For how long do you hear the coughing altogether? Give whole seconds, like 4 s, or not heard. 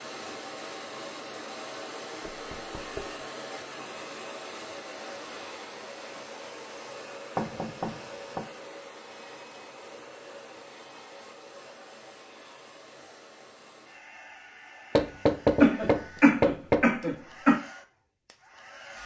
2 s.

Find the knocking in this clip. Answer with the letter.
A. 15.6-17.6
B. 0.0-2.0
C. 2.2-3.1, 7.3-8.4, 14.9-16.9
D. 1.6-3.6
C.